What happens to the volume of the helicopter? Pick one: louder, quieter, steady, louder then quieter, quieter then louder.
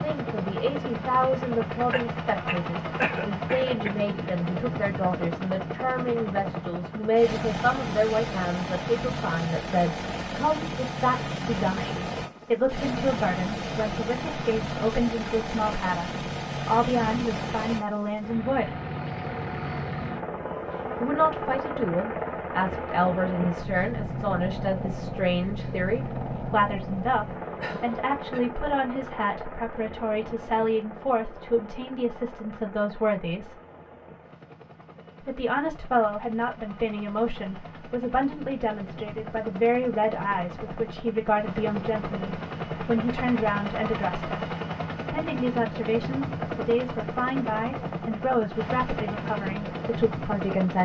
quieter then louder.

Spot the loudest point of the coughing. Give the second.
3 s.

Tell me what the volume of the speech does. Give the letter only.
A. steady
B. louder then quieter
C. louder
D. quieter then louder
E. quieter
A.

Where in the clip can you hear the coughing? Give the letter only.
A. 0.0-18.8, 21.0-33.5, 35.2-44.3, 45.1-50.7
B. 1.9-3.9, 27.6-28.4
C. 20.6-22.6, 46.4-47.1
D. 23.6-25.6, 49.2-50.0
B.